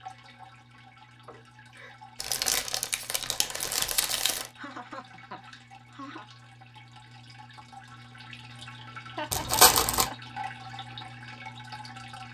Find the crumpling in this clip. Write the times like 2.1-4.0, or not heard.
2.2-4.5, 9.3-10.1.